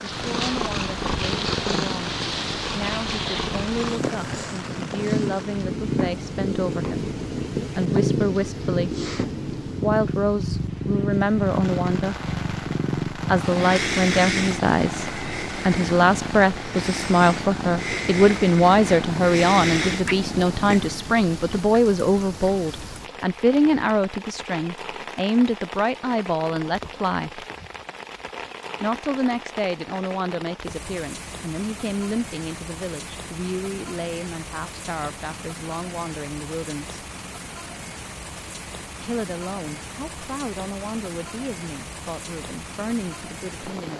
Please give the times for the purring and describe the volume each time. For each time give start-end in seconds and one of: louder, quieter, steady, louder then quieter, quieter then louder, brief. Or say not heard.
0.0-21.6 steady.